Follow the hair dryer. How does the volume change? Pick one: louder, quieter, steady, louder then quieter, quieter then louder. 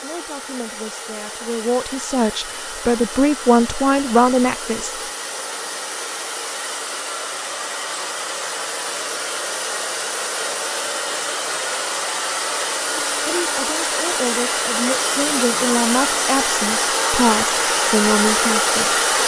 louder.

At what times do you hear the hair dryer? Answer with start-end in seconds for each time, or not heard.
0.0-19.2.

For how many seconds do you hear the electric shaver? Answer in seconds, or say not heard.
not heard.